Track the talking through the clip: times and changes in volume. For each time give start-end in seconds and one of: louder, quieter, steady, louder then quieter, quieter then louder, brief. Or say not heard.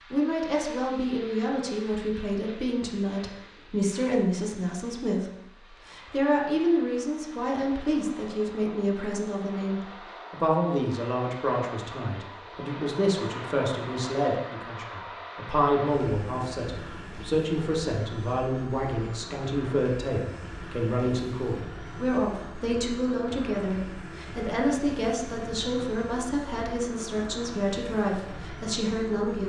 0.1-29.4 steady.